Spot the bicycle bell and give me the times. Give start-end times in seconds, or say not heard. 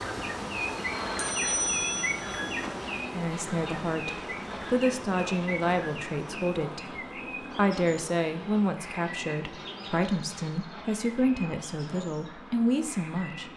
1.1-2.7.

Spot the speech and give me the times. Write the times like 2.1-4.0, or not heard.
3.1-13.5.